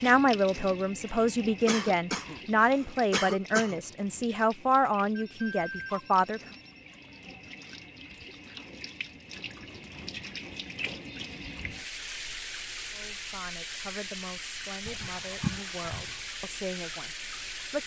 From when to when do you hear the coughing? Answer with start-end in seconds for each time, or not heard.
1.6-3.8, 14.8-16.2.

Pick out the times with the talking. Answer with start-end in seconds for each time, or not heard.
0.0-6.4, 12.9-17.8.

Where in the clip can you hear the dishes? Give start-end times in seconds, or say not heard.
not heard.